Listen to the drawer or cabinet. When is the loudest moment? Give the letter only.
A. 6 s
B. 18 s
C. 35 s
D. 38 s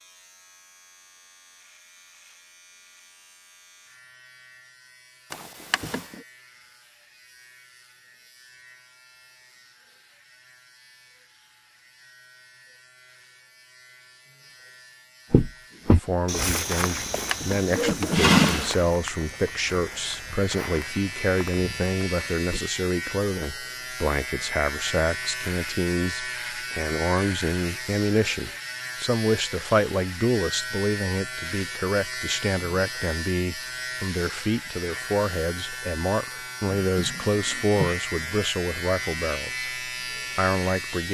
B.